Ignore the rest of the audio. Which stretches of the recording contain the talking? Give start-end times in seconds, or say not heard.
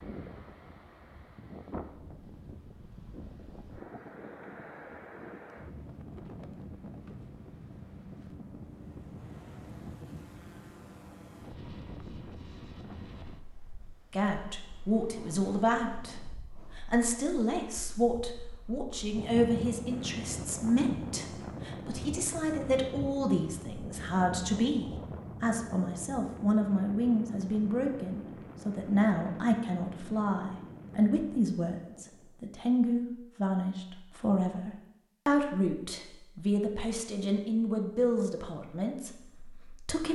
14.1-16.1, 16.8-40.1.